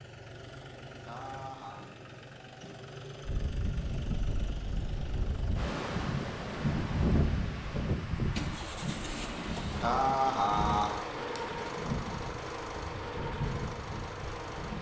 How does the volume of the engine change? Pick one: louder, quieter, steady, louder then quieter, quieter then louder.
louder.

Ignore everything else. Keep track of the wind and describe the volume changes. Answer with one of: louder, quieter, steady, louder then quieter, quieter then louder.
louder then quieter.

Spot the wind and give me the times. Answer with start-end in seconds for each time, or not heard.
3.2-14.7.